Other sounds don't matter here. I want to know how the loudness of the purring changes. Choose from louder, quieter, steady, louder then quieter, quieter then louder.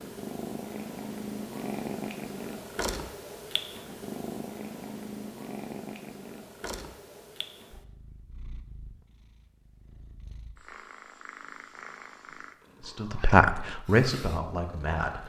quieter.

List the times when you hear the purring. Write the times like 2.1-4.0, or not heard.
0.0-15.2.